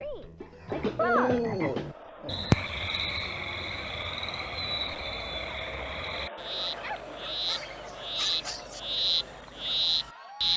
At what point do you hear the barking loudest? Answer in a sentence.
The volume of the barking peaks at 1 second.